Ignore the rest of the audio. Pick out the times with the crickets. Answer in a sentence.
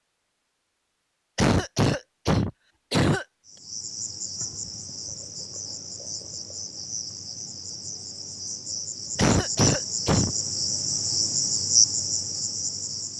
The crickets can be heard from 3.5 to 13.1 s.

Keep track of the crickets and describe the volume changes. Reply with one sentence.
The volume of the crickets goes up.